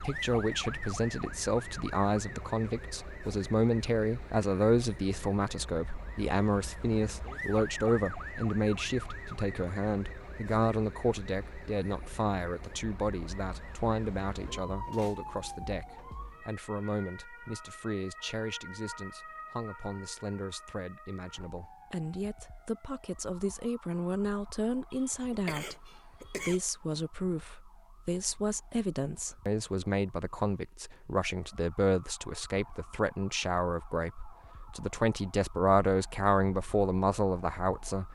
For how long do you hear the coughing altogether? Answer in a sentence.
The coughing can be heard for 2 seconds in total.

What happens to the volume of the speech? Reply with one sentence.
The loudness of the speech goes down, then up.